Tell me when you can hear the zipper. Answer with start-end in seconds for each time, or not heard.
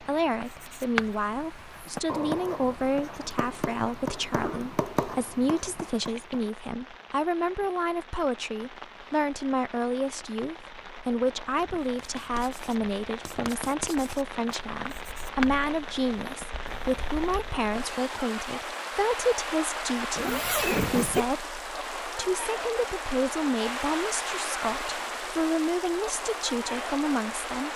20.1-21.2.